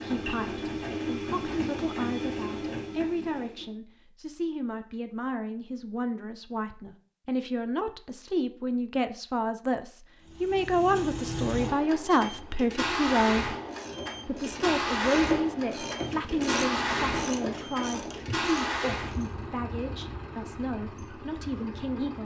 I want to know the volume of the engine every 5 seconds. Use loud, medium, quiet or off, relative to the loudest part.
loud, off, loud, loud, medium.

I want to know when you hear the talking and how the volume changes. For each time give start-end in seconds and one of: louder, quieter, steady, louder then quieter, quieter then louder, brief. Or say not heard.
0.0-13.6 louder
14.2-22.1 quieter.